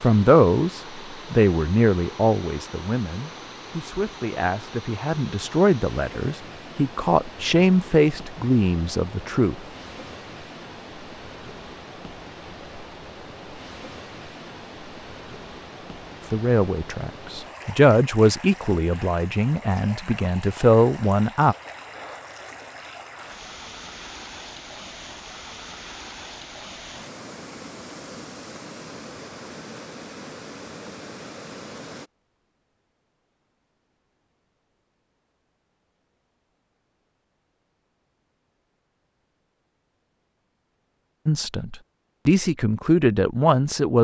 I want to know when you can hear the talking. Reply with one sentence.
You can hear the talking from 0.0 to 9.7 s, from 16.3 to 21.6 s and from 41.2 to 43.9 s.